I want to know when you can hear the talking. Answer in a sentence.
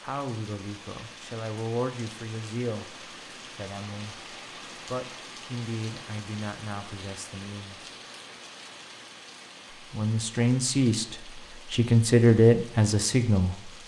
You can hear the talking from 0.0 to 7.9 s and from 9.7 to 13.7 s.